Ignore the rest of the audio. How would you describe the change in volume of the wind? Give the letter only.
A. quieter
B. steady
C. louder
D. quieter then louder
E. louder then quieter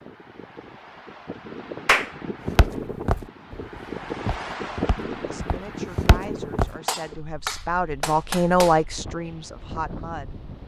E.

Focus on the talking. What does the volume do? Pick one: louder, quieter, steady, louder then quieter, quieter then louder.
louder then quieter.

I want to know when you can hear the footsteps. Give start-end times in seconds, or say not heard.
2.5-6.8.